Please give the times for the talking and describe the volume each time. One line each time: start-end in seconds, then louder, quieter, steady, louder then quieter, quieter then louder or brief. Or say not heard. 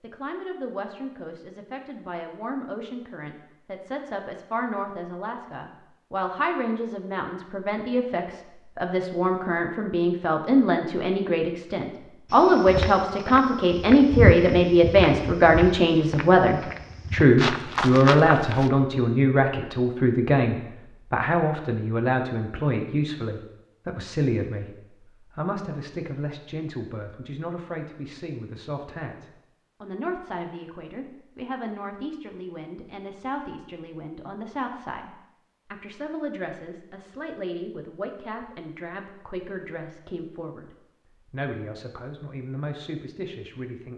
0.0-43.9 louder then quieter.